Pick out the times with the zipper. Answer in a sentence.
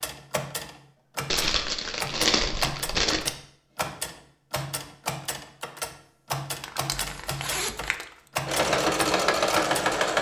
You can hear the zipper from 6.9 to 8.0 s.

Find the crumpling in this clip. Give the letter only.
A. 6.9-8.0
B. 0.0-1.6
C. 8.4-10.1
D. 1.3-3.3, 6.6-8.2
D.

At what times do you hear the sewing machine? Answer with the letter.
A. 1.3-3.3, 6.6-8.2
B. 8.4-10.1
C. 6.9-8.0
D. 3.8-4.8
B.